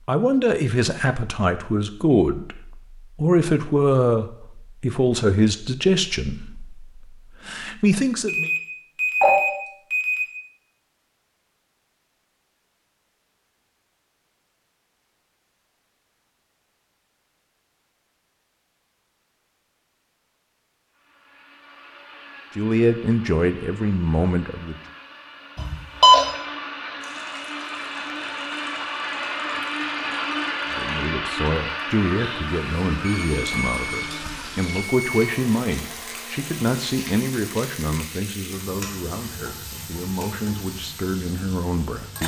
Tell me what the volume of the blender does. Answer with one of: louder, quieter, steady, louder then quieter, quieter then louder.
louder then quieter.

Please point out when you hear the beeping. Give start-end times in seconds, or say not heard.
8.2-10.2, 25.6-26.2, 33.0-35.2.